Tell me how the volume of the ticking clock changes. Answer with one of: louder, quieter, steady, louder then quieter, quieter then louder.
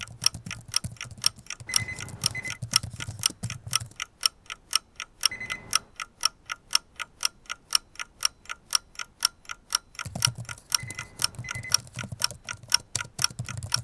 quieter.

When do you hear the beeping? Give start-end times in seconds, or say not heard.
1.6-2.6, 5.2-5.9, 10.8-11.8.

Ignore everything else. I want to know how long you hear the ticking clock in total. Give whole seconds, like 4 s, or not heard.
14 s.